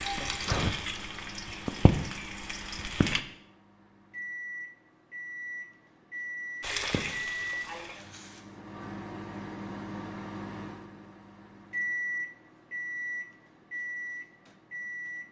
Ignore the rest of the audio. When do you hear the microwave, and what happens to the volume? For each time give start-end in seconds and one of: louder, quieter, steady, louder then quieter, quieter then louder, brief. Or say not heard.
0.0-15.2 louder.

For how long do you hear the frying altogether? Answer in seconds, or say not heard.
5 s.